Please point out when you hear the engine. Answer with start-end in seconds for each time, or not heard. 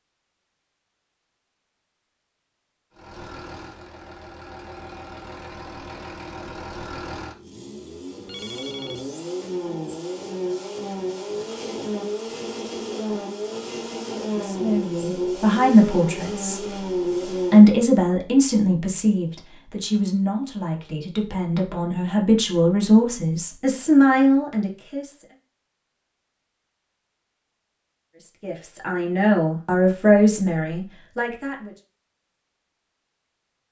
2.9-17.8.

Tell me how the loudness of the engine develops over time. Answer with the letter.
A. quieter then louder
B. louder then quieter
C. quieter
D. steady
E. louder
E.